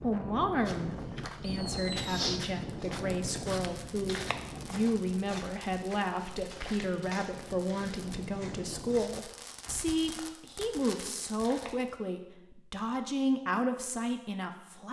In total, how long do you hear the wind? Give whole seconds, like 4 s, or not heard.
9 s.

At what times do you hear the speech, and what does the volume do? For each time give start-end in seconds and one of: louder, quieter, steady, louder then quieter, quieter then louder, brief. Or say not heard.
0.0-14.8 steady.